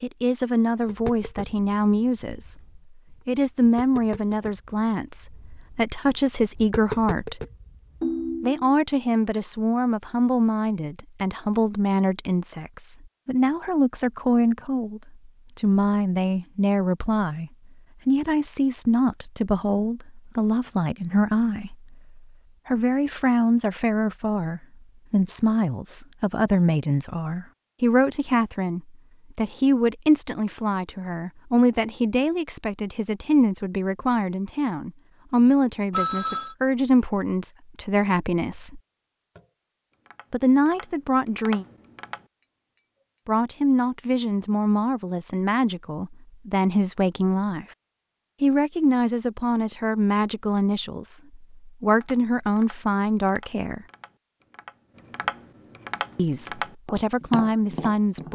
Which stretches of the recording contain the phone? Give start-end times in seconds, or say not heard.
8.0-8.7, 35.9-36.5.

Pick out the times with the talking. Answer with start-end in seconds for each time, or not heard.
0.0-7.5, 8.4-38.8, 40.3-41.6, 43.2-47.6, 48.4-53.9, 56.1-58.3.